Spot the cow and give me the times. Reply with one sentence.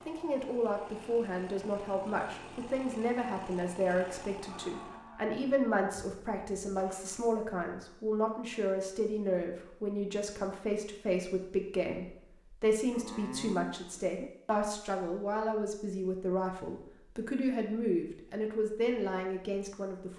The cow can be heard from 4.5 to 5.4 s and from 12.9 to 14.3 s.